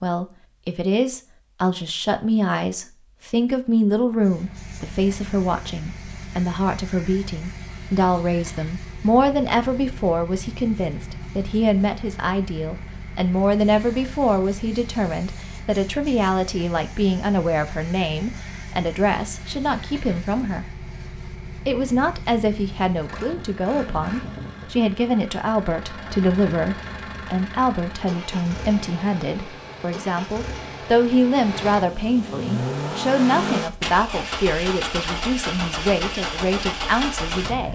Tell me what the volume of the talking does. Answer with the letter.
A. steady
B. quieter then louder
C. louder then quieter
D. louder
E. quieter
A.